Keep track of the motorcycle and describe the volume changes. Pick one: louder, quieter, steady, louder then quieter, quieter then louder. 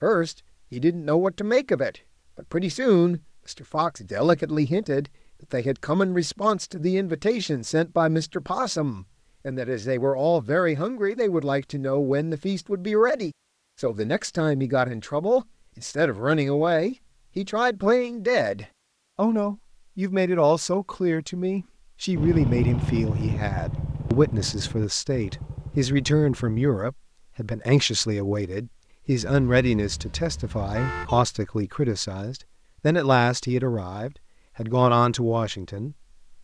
quieter.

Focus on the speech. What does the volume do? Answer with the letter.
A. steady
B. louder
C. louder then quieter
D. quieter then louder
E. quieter
A.